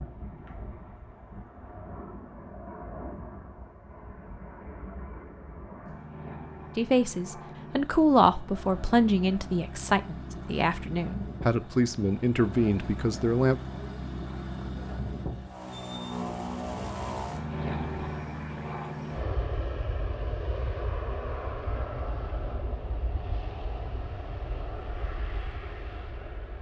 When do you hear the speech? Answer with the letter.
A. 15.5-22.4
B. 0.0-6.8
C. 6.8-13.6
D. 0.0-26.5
C.